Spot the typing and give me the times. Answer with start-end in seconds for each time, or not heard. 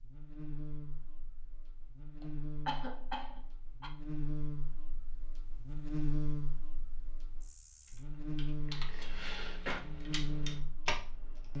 7.8-10.9.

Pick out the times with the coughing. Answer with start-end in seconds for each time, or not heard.
2.2-3.9, 9.1-9.8.